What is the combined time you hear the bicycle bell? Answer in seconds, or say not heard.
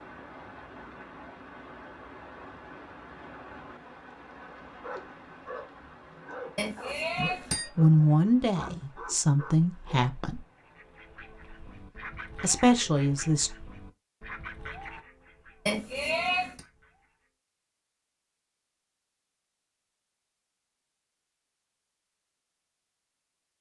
2 s.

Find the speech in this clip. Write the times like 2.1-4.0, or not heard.
7.2-10.4, 12.4-13.5.